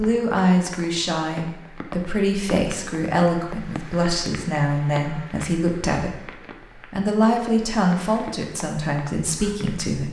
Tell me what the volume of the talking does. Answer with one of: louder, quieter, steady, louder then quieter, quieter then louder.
steady.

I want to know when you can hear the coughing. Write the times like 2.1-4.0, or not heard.
not heard.